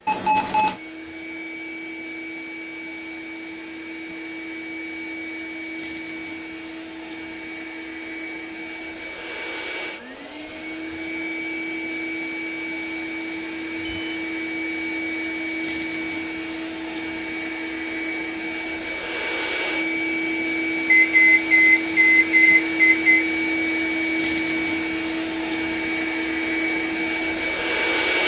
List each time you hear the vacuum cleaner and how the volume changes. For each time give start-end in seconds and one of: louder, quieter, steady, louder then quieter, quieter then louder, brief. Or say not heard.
0.0-28.2 louder.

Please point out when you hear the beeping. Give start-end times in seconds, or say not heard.
0.1-0.8, 13.8-14.2, 20.9-23.2.